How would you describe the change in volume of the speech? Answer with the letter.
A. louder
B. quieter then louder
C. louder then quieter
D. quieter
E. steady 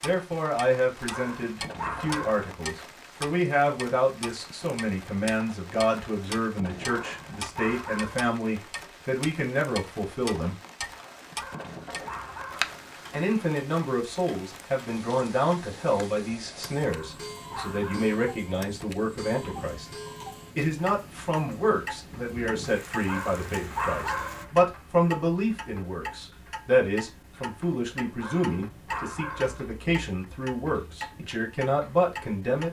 E.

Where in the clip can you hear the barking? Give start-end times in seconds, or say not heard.
1.1-2.5, 6.8-8.3, 11.3-12.8, 16.8-18.1, 23.1-24.5, 28.1-29.6.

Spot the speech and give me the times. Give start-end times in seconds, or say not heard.
0.0-10.6, 13.1-19.9, 20.6-32.6.